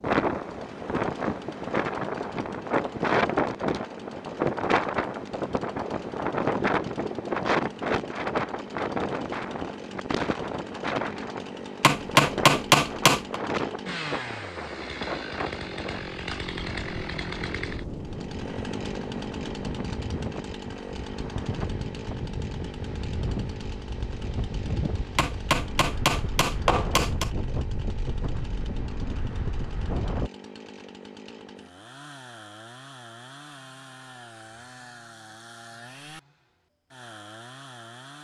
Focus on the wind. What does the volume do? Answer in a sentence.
The volume of the wind goes down.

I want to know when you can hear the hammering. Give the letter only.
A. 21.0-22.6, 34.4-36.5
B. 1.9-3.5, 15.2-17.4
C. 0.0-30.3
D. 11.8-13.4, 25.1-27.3
D.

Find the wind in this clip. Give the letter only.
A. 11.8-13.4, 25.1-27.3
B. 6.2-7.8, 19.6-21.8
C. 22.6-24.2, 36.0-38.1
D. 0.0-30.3
D.